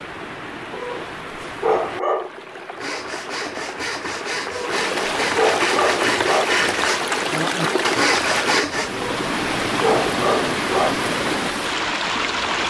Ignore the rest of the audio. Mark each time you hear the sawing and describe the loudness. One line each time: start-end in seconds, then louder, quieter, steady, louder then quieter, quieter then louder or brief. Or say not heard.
2.8-8.9 louder.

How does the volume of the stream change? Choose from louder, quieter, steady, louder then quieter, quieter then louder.
louder.